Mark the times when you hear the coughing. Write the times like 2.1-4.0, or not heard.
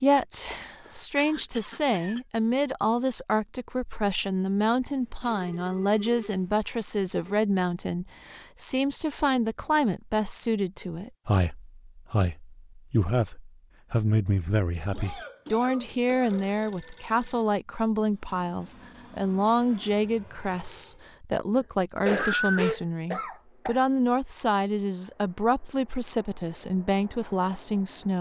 0.5-2.2, 14.9-16.6, 21.6-23.8.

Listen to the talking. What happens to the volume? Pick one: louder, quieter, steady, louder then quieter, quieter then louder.
steady.